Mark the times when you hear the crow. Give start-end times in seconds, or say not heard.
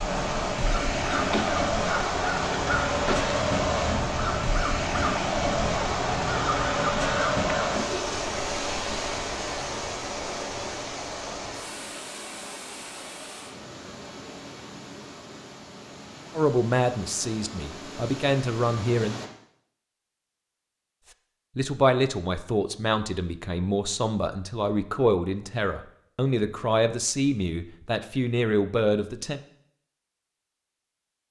0.6-7.7.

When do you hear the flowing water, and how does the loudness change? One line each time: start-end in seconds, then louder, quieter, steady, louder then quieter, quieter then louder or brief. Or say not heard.
0.0-19.3 quieter.